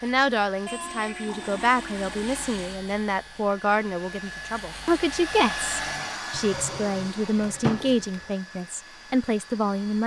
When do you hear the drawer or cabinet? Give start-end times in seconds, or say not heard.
6.7-8.1.